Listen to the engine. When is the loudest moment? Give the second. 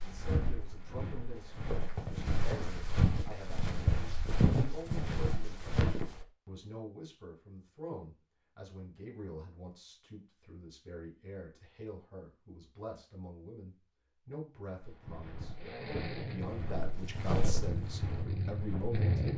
19 s.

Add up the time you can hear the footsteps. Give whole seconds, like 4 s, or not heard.
11 s.